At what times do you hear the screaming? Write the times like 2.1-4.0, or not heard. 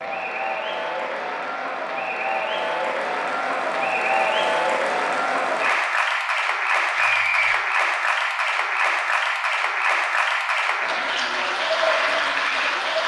6.9-7.6.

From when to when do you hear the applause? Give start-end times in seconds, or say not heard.
0.0-13.0.